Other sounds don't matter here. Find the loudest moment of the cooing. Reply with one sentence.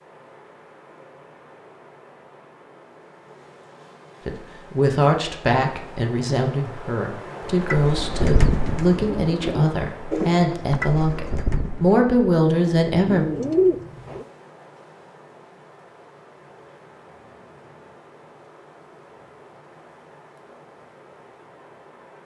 The loudest moment of the cooing is at 14 seconds.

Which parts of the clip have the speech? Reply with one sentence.
The speech can be heard from 4.2 to 13.2 s.